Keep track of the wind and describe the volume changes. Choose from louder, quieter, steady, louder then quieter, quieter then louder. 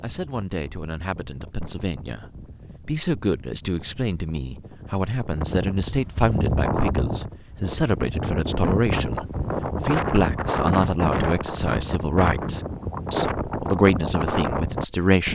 louder.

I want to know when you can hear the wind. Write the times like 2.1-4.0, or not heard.
0.0-15.3.